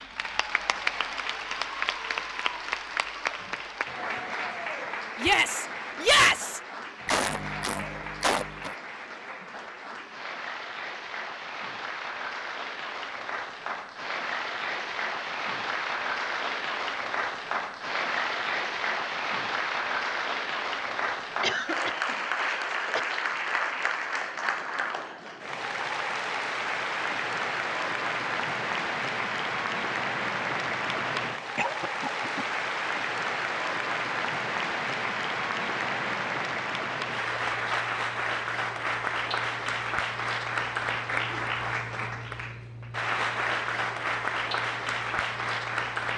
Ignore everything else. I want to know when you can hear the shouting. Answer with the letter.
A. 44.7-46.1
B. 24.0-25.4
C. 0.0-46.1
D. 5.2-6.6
D.